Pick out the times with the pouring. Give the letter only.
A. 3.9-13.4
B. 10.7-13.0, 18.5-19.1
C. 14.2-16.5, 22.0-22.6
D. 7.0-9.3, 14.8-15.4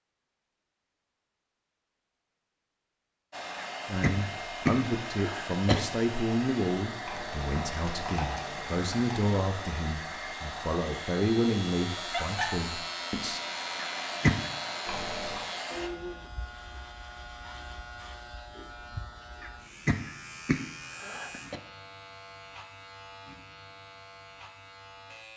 D.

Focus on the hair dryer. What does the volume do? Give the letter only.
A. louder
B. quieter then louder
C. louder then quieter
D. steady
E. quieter
D.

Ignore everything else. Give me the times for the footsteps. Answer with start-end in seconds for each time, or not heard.
not heard.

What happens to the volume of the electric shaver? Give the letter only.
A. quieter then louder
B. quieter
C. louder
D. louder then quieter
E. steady
B.